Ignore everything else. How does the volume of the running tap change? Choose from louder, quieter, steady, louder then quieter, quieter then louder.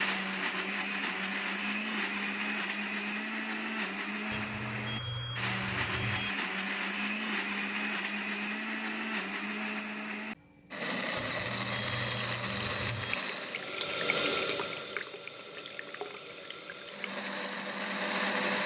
louder then quieter.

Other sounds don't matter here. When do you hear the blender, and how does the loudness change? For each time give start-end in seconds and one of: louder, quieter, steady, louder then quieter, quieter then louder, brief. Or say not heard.
0.0-13.8 steady
16.9-18.6 brief.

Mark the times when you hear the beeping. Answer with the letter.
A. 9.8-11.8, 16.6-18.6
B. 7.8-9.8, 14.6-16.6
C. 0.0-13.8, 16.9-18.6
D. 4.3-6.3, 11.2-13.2
D.